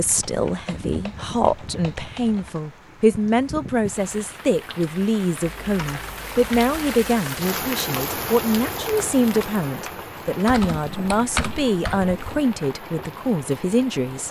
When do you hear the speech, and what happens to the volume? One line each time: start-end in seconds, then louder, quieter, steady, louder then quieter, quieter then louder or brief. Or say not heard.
0.0-14.2 steady.